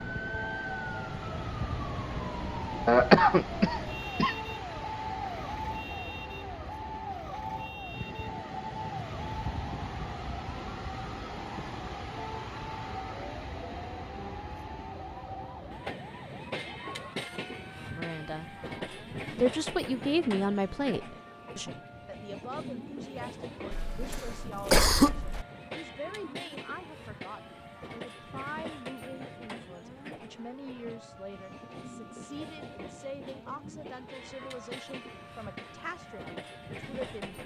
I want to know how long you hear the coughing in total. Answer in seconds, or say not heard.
3 s.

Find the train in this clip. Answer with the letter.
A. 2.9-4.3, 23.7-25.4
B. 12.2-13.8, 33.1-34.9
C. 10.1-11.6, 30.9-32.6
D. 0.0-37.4
D.